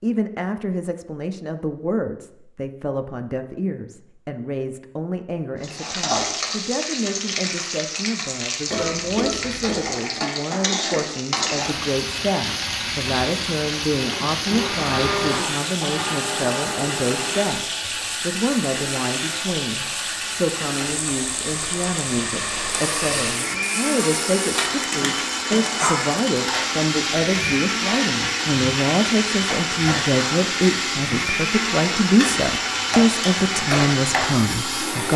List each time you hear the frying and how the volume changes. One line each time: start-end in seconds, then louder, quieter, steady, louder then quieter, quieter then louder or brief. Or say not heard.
5.6-35.1 steady.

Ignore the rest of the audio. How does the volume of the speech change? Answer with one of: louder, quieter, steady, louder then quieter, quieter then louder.
louder.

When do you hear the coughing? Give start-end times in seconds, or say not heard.
8.7-9.9.